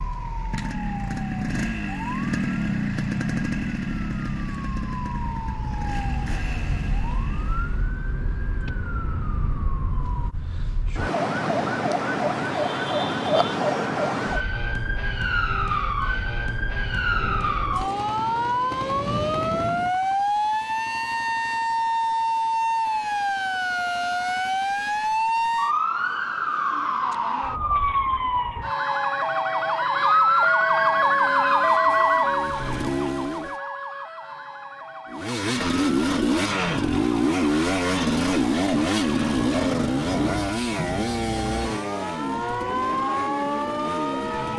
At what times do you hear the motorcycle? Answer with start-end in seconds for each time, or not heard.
0.0-8.0, 30.9-33.6, 35.1-44.5.